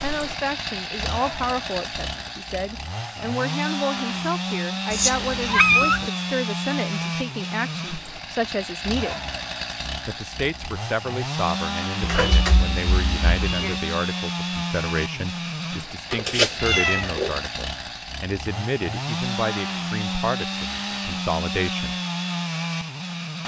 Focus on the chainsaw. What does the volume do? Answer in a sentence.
The loudness of the chainsaw stays about the same.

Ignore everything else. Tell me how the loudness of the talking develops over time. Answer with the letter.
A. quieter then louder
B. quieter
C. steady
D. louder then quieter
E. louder
C.